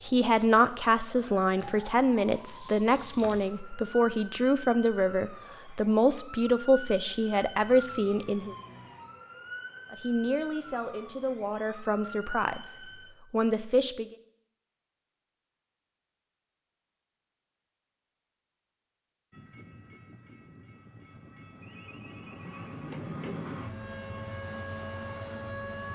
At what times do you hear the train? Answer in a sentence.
The train can be heard from 19.3 to 25.9 s.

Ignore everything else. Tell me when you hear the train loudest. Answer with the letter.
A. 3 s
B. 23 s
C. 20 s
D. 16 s
B.